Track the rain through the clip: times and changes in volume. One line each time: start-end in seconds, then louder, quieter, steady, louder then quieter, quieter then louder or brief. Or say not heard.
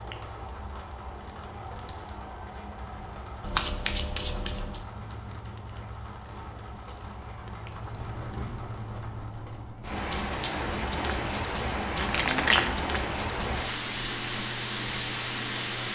0.0-15.9 louder.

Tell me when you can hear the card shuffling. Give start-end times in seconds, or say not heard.
3.4-4.8, 11.9-12.9.